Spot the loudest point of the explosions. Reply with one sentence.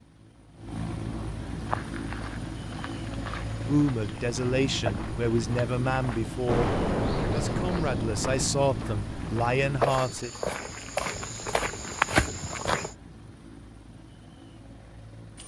The volume of the explosions peaks at 7 seconds.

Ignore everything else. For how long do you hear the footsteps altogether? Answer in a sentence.
You can hear the footsteps for 11 seconds altogether.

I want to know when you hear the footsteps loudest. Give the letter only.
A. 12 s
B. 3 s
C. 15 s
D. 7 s
A.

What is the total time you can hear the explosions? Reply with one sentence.
The explosions can be heard for 2 seconds in total.